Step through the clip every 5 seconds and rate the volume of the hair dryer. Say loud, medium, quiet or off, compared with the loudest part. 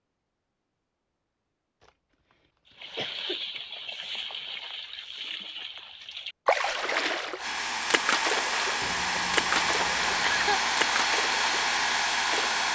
off, loud, loud.